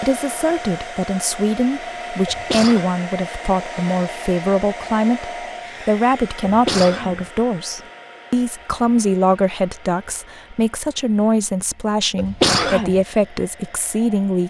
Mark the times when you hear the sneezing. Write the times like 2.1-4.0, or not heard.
2.2-2.9, 6.5-7.2, 12.2-13.0.